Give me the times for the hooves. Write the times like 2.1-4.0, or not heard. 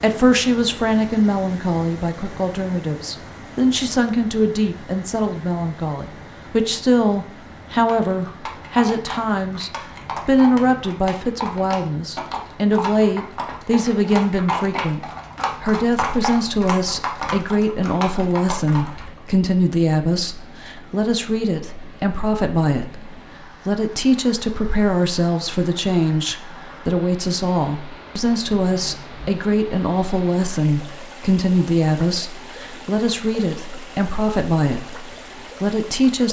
7.8-19.1.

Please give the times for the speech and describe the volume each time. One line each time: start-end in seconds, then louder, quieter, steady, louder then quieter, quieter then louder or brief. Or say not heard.
0.0-15.0 steady
15.6-36.2 steady.